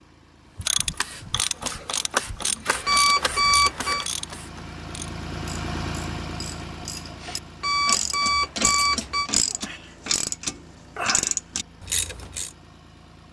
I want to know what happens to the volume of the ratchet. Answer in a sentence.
The loudness of the ratchet goes down, then up.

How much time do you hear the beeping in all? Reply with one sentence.
The beeping can be heard for 3 seconds in total.